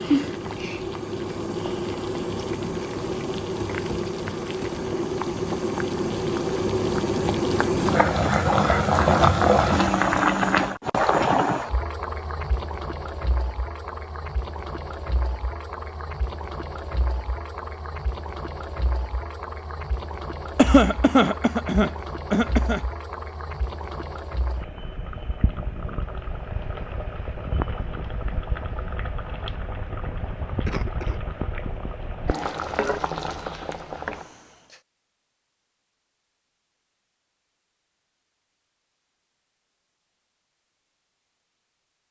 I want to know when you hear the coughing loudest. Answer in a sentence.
The loudest moment of the coughing is at 21 seconds.